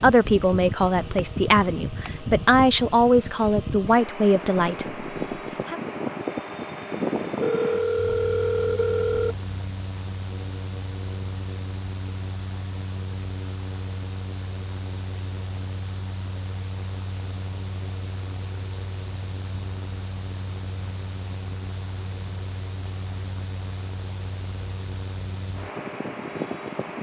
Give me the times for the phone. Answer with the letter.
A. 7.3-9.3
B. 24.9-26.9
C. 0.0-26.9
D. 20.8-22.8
A.